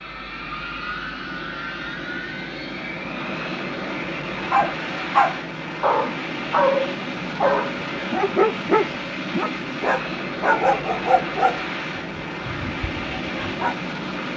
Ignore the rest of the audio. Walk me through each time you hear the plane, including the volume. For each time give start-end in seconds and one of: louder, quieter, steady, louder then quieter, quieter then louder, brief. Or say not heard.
0.0-14.3 steady.